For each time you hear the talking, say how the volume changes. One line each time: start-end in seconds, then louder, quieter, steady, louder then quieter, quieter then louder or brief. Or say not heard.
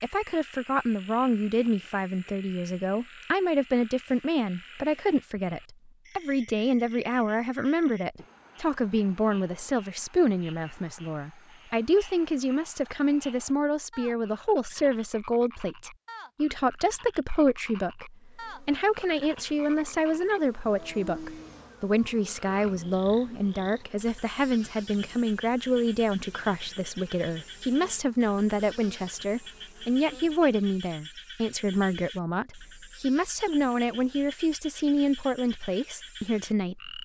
0.0-36.9 steady.